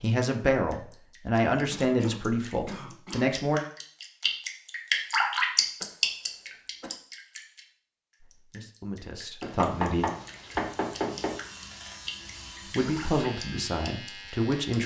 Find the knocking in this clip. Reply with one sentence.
You can hear the knocking from 9.4 to 11.3 s.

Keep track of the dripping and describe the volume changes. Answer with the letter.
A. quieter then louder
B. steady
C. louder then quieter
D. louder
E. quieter
C.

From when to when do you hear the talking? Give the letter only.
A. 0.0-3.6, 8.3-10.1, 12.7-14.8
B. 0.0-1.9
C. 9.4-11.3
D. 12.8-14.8
A.